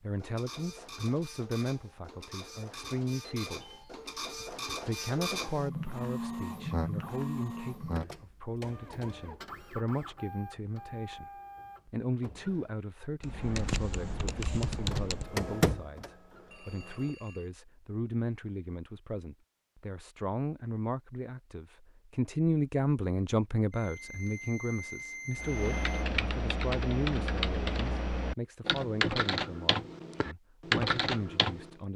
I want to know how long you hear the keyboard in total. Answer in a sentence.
You can hear the keyboard for 9 seconds altogether.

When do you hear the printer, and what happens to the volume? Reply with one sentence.
You can hear the printer from 0.1 to 12.7 s, getting louder then quieter; and briefly from 14.7 to 17.1 s.